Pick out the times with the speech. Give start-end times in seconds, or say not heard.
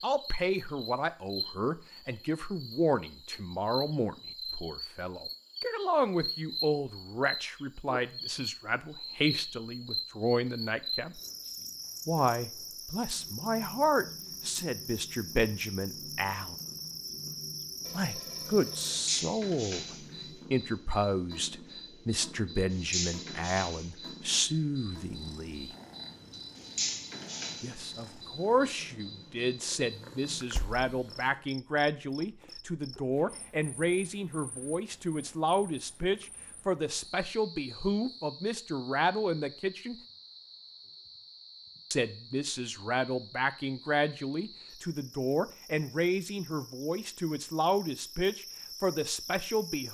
0.0-11.2, 12.1-16.6, 17.9-25.7, 27.6-40.0, 41.9-49.8.